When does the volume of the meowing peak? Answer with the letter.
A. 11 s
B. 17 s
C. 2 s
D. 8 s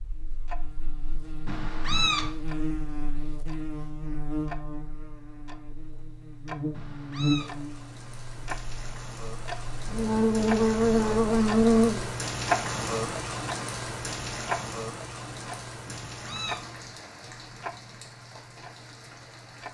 C.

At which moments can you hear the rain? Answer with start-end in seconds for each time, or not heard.
7.3-19.6.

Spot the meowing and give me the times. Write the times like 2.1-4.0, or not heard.
1.4-2.3, 6.7-7.5, 15.8-16.6.